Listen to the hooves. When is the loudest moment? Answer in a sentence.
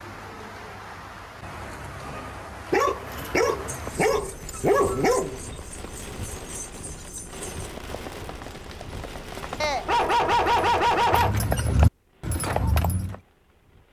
The volume of the hooves peaks at 12 seconds.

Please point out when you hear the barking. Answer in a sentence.
You can hear the barking from 2.7 to 5.4 s and from 9.6 to 11.3 s.